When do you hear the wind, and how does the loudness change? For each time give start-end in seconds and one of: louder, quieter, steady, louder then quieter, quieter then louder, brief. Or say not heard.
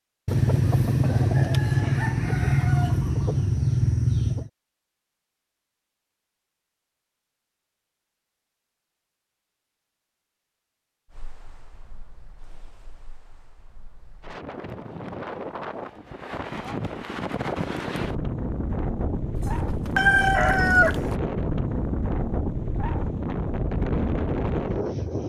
11.1-25.2 louder.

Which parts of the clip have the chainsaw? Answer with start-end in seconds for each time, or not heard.
not heard.